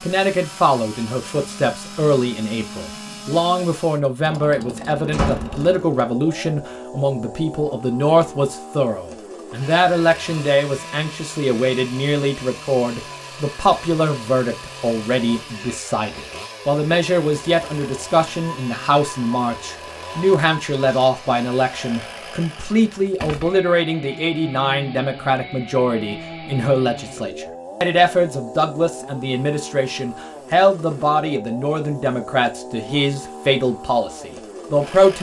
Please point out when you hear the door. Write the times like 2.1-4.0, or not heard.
5.1-5.6.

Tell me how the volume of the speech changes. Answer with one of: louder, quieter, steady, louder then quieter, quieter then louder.
steady.